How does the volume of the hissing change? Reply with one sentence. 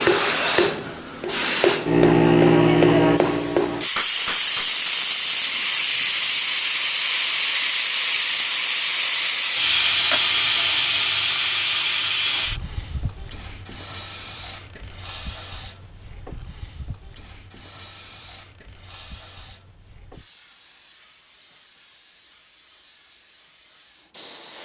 The volume of the hissing goes down.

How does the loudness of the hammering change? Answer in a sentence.
The loudness of the hammering stays about the same.